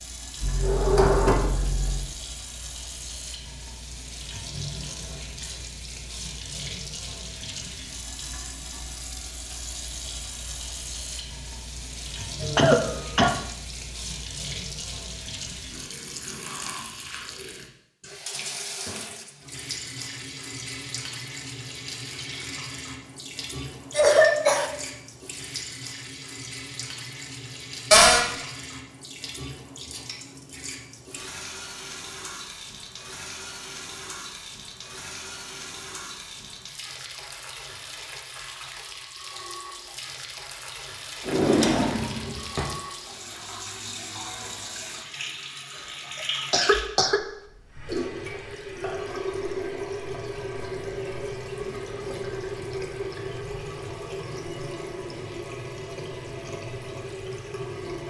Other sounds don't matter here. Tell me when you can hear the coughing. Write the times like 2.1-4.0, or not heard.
12.4-13.3, 23.9-24.7, 46.5-47.2.